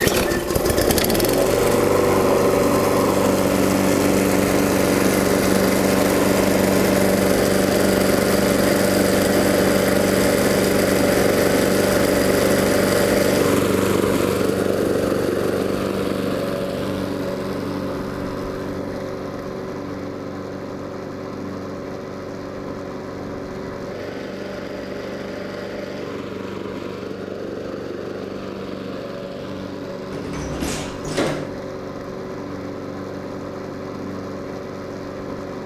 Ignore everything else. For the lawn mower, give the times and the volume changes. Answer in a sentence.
You can hear the lawn mower from 0.0 to 35.6 s, getting quieter.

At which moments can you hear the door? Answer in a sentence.
You can hear the door from 30.1 to 31.5 s.